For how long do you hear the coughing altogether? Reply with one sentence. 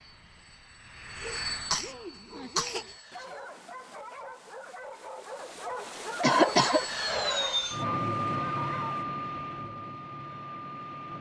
You can hear the coughing for 2 seconds altogether.